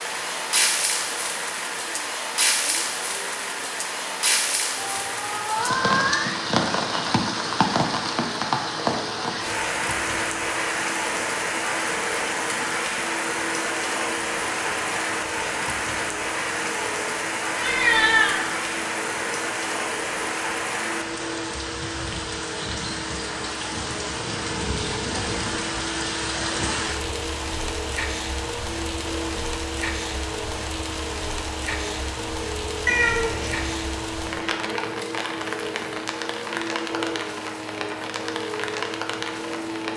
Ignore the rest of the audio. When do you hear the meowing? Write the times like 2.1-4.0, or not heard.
4.8-6.4, 17.6-18.4, 32.9-33.8.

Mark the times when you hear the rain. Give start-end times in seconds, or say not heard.
0.0-39.9.